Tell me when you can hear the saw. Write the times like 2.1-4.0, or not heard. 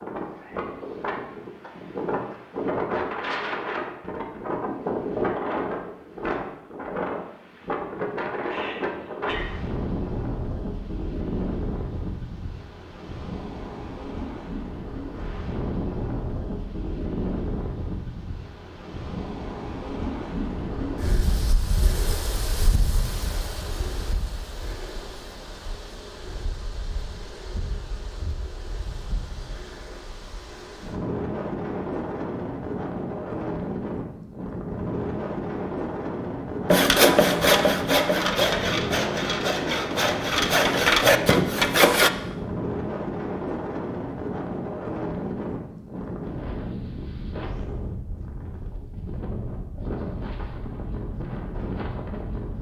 36.7-42.1.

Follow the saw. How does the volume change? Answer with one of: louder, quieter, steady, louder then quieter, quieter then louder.
quieter then louder.